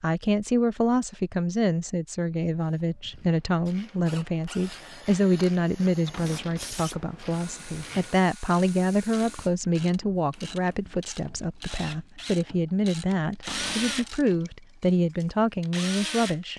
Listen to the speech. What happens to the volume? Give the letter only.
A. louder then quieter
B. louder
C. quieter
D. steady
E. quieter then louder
D.